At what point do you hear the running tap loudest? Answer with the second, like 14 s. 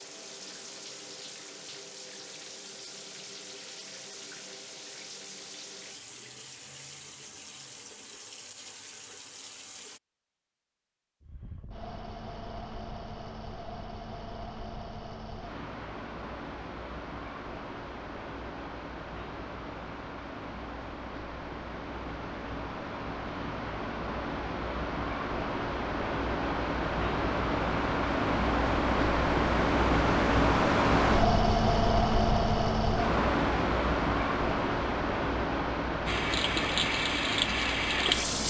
38 s.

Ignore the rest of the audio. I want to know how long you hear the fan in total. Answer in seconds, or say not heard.
27 s.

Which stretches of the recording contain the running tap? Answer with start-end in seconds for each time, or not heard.
0.0-10.0, 36.0-38.4.